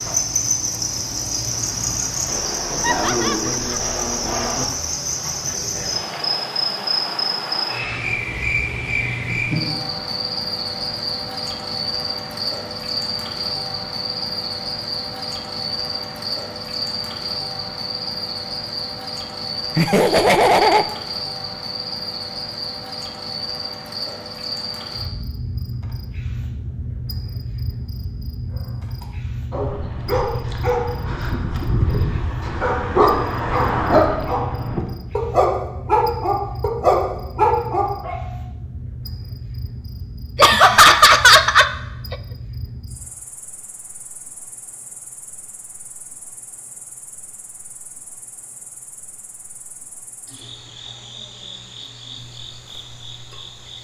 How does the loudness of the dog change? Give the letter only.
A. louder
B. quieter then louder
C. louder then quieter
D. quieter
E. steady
A.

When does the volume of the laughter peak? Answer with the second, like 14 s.
41 s.